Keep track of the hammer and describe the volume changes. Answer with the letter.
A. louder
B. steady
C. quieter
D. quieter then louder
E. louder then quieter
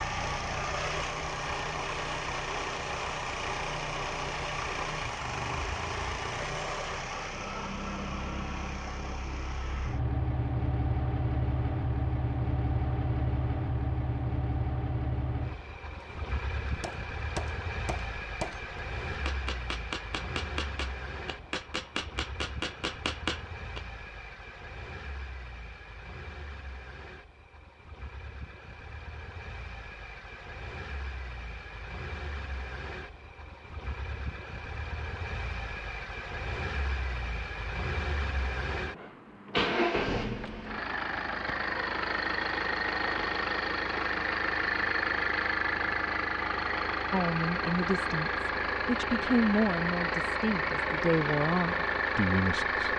A.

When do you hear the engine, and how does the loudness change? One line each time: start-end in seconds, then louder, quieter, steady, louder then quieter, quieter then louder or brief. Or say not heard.
0.0-52.9 quieter then louder.